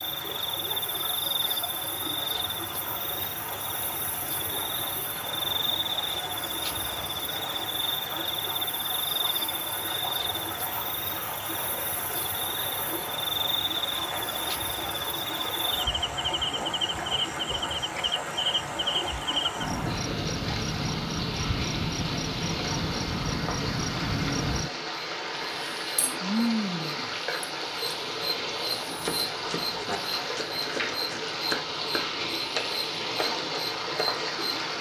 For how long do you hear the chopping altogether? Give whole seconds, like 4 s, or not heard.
5 s.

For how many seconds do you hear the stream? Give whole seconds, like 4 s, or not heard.
35 s.